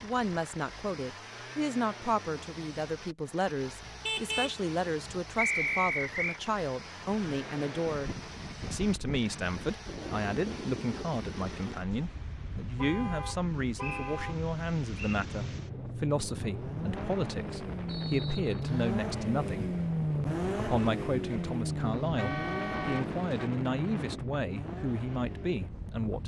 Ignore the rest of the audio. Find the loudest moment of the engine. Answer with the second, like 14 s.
20 s.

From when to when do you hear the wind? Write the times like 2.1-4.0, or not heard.
6.9-26.2.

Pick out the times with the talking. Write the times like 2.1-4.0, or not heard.
0.0-19.8, 20.6-26.2.